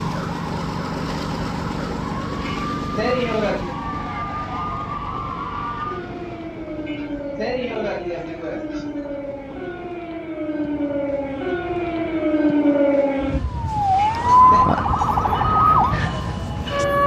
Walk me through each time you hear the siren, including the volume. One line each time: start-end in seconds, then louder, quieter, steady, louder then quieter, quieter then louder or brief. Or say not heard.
0.0-17.0 louder.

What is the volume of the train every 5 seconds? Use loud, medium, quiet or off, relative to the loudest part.
loud, medium, medium, loud.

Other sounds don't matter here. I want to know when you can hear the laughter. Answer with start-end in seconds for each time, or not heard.
2.4-3.8, 6.8-9.2, 13.9-14.7.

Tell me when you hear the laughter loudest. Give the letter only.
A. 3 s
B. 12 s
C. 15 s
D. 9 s
A.